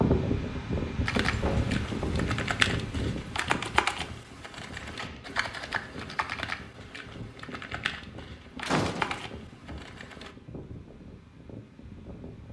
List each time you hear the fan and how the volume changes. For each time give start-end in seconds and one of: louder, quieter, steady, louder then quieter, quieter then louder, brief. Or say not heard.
0.0-12.4 quieter.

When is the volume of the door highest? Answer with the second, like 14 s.
9 s.